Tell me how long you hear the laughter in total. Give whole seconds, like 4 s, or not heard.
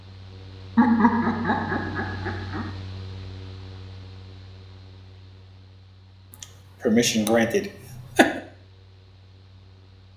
4 s.